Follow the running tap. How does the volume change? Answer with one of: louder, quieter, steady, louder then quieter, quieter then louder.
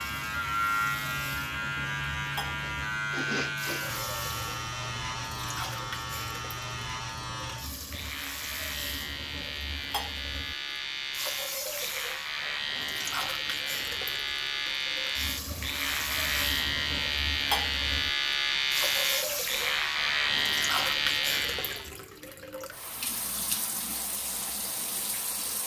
louder.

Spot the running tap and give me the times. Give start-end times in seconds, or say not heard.
0.0-25.6.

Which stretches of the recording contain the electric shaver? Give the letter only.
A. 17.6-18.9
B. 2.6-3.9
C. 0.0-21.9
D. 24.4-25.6
C.